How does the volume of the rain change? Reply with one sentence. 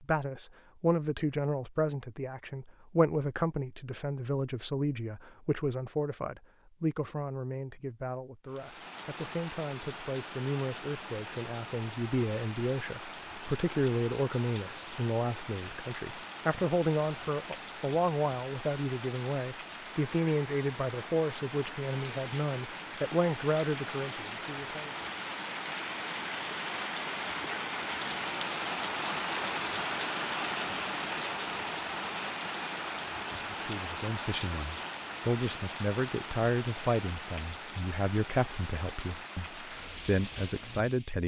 The volume of the rain goes up, then down.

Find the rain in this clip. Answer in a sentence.
You can hear the rain from 8.4 to 41.2 s.